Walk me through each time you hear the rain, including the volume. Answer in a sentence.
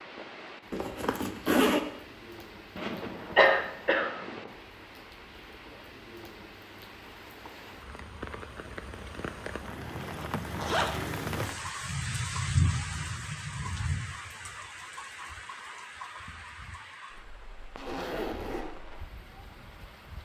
You can hear the rain from 0.0 to 20.1 s, getting louder then quieter.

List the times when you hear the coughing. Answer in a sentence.
You can hear the coughing from 2.8 to 4.4 s.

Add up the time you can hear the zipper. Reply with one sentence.
The zipper can be heard for 4 seconds in total.